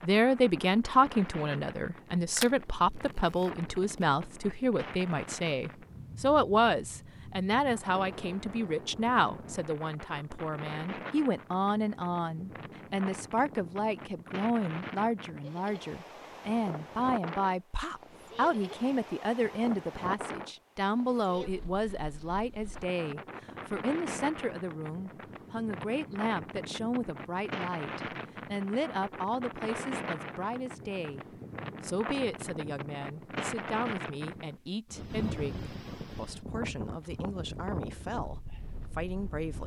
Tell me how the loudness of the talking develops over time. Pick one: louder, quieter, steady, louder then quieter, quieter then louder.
quieter.